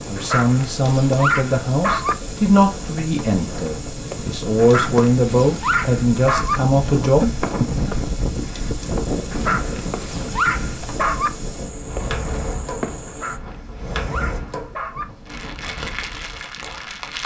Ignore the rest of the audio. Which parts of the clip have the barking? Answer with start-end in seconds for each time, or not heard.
0.1-2.1, 4.5-6.6, 9.3-11.3, 13.1-15.1.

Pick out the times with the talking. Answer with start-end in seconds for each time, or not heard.
0.1-8.0.